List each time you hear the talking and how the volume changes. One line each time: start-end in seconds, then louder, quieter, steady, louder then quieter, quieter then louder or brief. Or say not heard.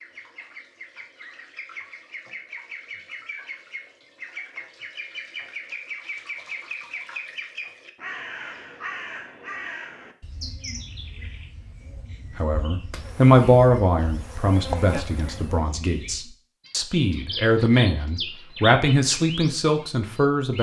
12.3-20.5 quieter then louder.